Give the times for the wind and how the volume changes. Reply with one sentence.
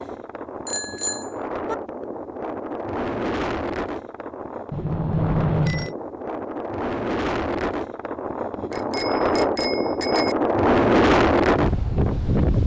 The wind can be heard from 0.0 to 12.6 s, getting louder.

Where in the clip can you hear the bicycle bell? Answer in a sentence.
The bicycle bell can be heard from 0.7 to 1.8 s, from 4.7 to 6.0 s and from 8.7 to 10.3 s.